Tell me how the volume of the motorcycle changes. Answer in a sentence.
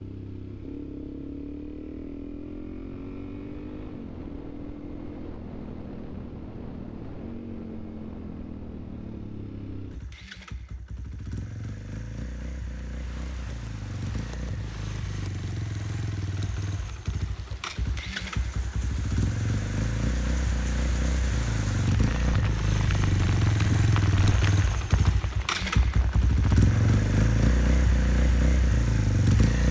The volume of the motorcycle goes up.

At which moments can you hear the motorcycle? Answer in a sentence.
You can hear the motorcycle from 0.0 to 29.6 s.